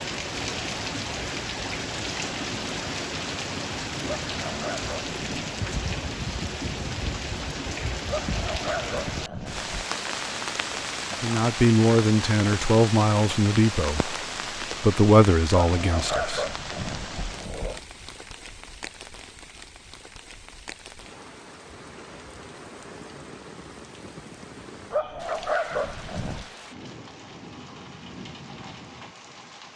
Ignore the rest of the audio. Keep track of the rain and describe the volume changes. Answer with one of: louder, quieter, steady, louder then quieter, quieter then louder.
quieter.